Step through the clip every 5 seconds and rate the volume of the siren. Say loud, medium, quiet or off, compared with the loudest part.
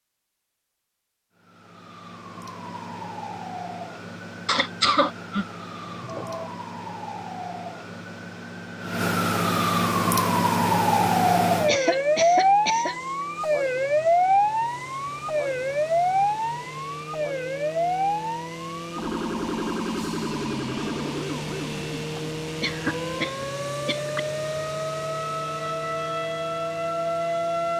quiet, medium, loud, medium, medium, medium.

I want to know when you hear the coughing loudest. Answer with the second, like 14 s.
5 s.